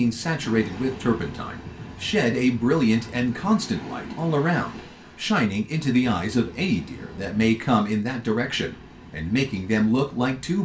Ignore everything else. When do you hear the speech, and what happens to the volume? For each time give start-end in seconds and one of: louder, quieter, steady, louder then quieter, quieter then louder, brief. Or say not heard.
0.0-10.6 steady.